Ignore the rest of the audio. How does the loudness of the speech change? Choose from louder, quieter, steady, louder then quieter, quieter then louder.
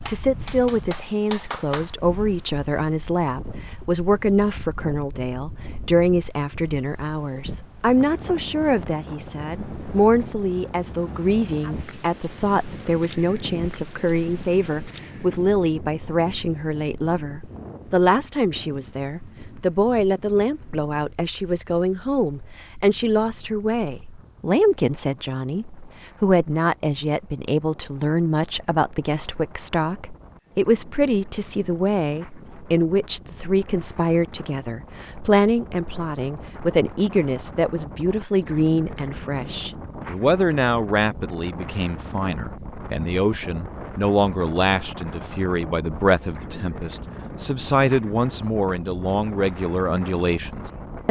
steady.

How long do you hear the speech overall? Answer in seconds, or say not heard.
51 s.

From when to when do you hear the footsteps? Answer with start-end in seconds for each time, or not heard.
not heard.